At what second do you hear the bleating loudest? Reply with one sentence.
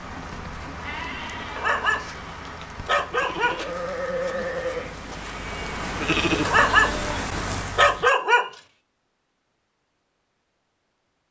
The volume of the bleating peaks at 6 seconds.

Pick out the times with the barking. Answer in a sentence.
The barking can be heard from 1.6 to 2.0 s, from 2.9 to 3.6 s, from 6.5 to 7.0 s and from 7.8 to 8.5 s.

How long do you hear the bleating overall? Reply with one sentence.
You can hear the bleating for 8 seconds altogether.